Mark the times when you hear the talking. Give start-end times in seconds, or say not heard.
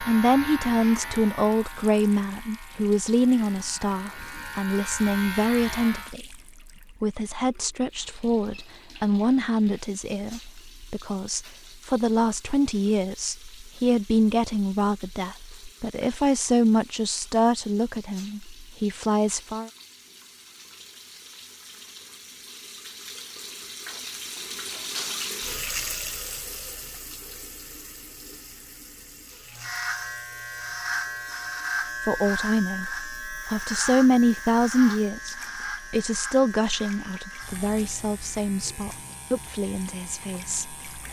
0.0-6.4, 7.0-19.7, 32.0-40.8.